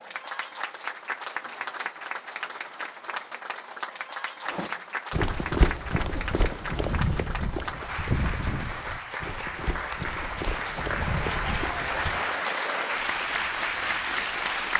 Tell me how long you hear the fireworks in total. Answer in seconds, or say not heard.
not heard.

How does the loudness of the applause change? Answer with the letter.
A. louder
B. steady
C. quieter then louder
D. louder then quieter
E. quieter
A.